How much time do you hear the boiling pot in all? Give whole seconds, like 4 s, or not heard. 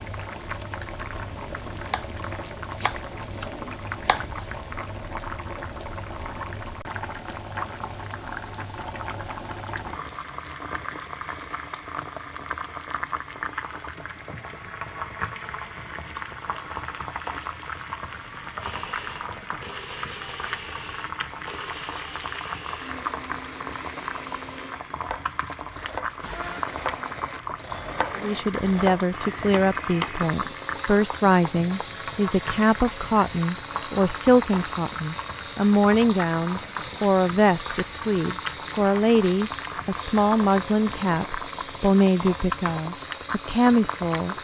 44 s.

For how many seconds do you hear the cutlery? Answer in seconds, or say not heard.
not heard.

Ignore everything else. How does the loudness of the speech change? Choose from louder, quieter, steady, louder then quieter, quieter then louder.
steady.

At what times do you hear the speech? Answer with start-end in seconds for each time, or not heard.
28.1-44.3.